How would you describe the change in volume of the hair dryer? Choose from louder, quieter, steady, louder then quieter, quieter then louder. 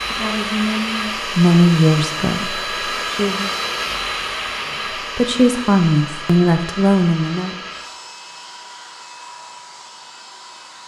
quieter.